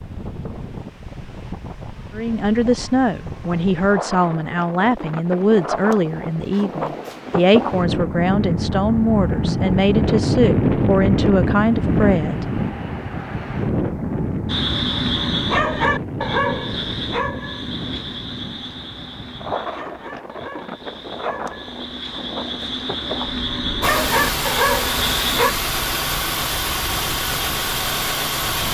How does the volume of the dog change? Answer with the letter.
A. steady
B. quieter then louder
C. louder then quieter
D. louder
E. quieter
B.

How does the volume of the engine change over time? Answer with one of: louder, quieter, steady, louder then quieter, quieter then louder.
steady.